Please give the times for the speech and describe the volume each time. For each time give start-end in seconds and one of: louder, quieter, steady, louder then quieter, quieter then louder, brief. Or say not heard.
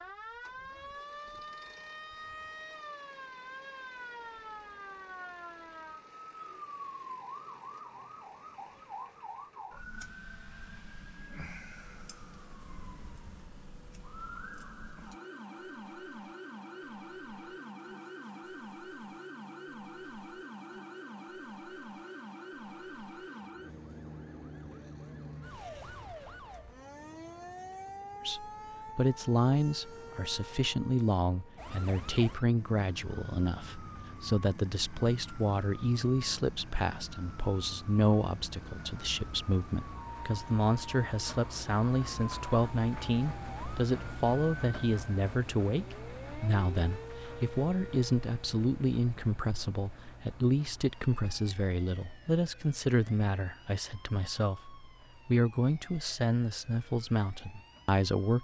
28.2-58.3 steady.